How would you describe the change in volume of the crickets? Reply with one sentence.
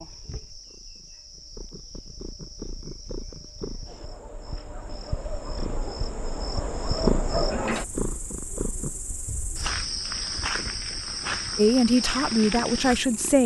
The volume of the crickets goes up.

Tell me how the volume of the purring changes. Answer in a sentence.
The volume of the purring goes up, then down.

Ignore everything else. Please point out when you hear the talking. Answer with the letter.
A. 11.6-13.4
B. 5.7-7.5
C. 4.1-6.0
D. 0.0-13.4
A.